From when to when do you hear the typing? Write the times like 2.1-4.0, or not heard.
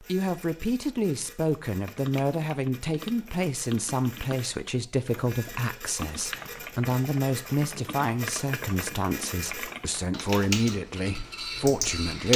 1.9-12.3.